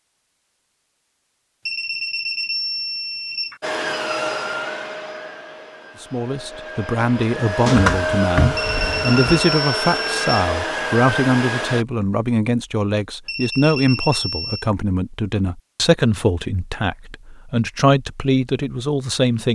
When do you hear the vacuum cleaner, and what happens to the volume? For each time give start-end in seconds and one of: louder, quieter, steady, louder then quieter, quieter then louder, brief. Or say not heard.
3.6-11.8 quieter then louder.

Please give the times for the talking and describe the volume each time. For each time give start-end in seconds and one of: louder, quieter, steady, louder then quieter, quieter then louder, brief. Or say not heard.
6.0-19.5 steady.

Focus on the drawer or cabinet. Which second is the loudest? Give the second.
8 s.